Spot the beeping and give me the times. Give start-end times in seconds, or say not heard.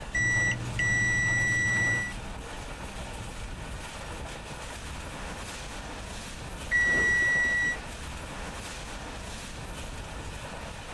0.1-2.1, 6.7-7.8.